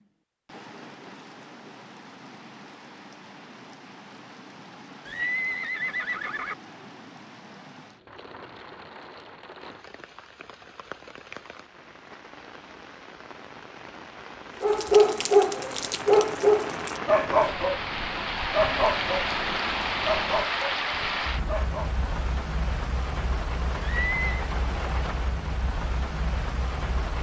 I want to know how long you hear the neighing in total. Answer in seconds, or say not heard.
2 s.